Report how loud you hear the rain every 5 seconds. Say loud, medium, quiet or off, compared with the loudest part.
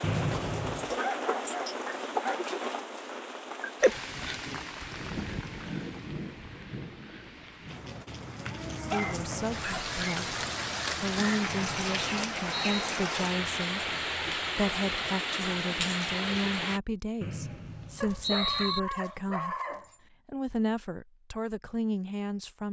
loud, medium, loud, loud, off.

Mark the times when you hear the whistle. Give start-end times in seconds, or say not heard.
0.0-0.9, 11.4-12.9, 17.2-18.8.